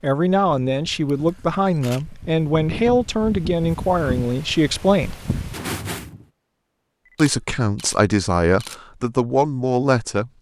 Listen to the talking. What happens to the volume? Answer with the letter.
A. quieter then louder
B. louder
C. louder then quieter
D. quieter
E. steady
E.